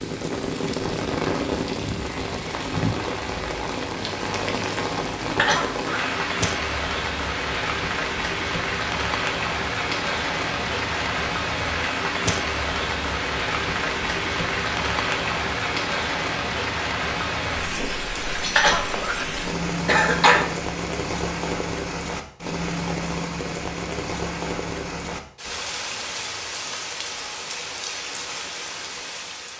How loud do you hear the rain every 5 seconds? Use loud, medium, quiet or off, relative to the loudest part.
loud, loud, loud, loud, loud, medium.